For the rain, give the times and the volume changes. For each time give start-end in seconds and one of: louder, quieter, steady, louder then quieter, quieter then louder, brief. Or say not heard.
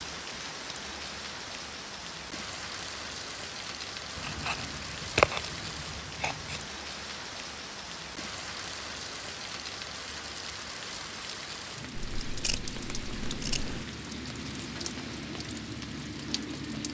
0.0-16.8 steady.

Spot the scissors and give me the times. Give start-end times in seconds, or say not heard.
4.2-6.7, 11.9-13.8.